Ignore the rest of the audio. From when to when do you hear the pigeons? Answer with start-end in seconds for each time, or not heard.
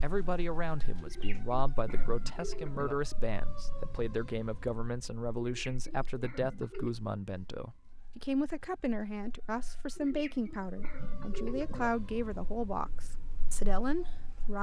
1.0-3.0, 5.4-7.0, 9.9-11.9.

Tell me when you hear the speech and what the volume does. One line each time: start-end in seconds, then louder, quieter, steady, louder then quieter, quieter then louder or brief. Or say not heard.
0.0-14.5 steady.